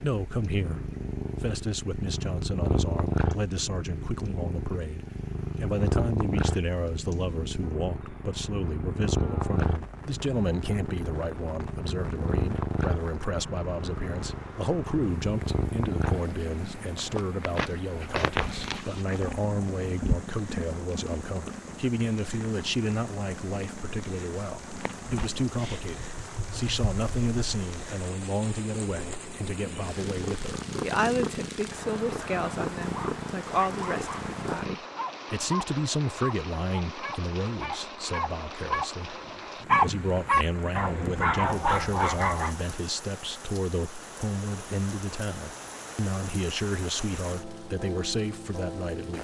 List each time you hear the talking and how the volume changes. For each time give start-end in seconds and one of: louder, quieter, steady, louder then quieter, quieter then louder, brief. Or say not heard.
0.0-49.1 steady.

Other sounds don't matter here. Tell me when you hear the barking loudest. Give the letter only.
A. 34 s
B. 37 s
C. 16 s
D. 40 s
D.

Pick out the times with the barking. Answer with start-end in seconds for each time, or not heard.
32.8-34.2, 35.0-42.5.